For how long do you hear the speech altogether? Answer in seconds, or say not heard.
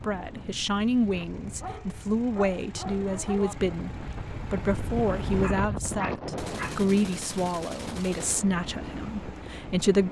10 s.